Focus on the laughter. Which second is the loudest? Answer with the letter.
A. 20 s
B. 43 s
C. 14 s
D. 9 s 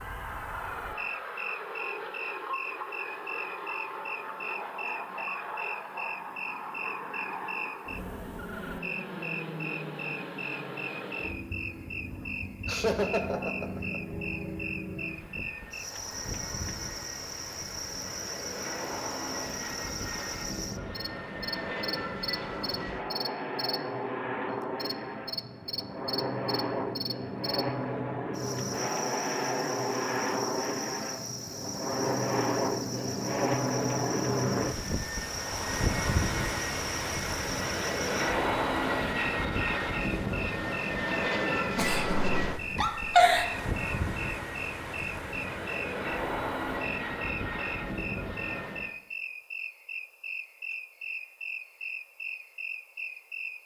B.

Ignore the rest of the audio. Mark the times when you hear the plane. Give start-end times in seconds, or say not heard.
0.0-49.0.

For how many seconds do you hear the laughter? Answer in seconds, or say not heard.
3 s.